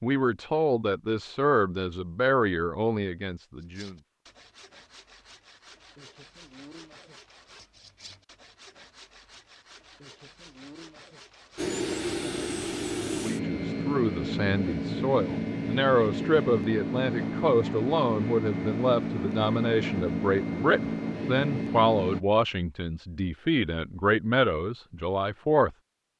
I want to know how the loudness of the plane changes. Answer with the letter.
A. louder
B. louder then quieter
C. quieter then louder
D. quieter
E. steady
E.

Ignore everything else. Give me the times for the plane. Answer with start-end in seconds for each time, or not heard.
11.6-22.2.